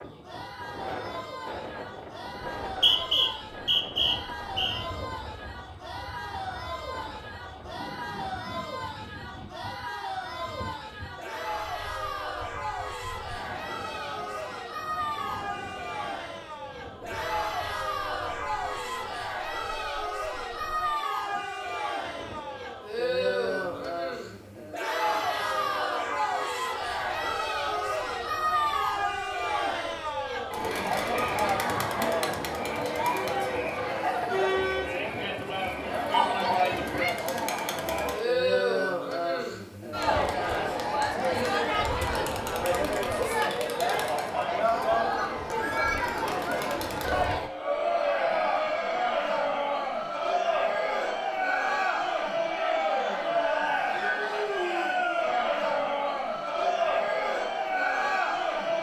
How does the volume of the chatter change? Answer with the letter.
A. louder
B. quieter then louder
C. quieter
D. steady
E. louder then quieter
A.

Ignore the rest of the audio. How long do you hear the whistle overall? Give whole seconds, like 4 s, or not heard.
2 s.